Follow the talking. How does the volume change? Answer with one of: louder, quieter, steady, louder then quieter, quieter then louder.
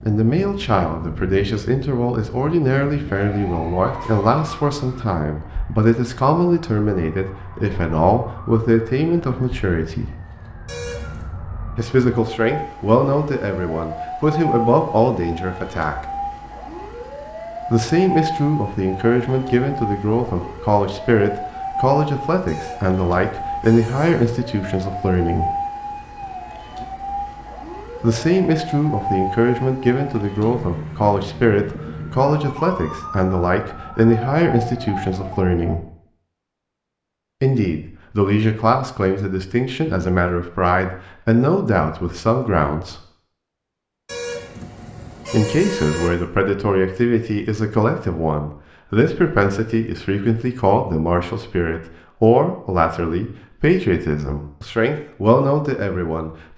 steady.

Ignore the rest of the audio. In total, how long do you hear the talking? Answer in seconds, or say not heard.
47 s.